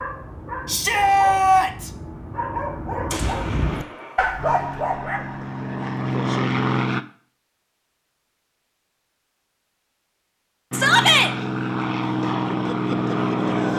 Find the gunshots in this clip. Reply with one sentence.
You can hear the gunshots from 3.1 to 4.2 s.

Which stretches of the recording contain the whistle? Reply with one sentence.
The whistle can't be heard in this clip.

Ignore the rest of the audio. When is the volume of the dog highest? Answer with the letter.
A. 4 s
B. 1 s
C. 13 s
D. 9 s
A.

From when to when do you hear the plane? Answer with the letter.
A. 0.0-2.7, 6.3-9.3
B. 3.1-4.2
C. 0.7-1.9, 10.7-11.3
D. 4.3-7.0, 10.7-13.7
D.